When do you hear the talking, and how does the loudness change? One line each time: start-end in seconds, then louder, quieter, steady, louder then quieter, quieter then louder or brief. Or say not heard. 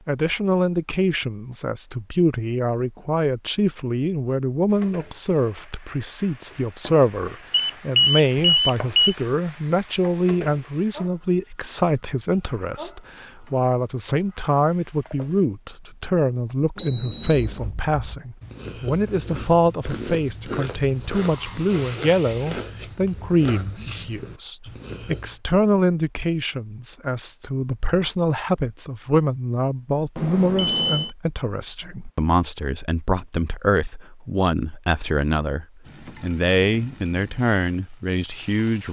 0.1-38.8 steady.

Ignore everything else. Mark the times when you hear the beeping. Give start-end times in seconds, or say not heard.
7.5-9.2, 16.8-17.7, 30.1-31.1.